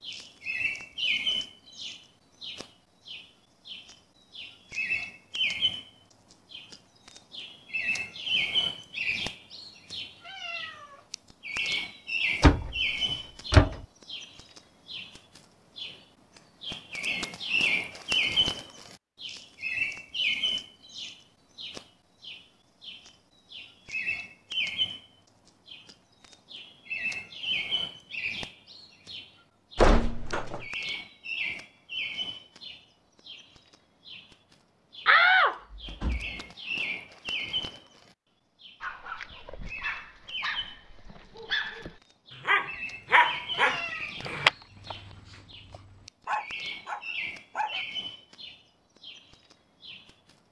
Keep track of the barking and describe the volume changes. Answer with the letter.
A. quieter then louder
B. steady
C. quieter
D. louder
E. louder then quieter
E.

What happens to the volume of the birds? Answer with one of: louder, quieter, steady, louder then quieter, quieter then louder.
quieter.